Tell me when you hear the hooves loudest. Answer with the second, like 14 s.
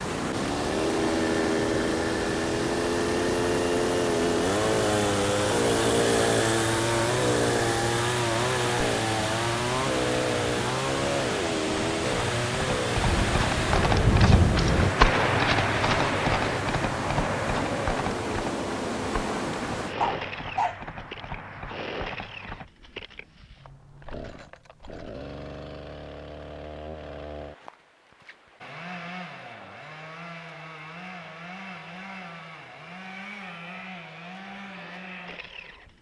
15 s.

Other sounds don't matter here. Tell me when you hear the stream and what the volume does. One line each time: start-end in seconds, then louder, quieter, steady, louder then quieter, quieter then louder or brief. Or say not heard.
0.0-19.9 steady.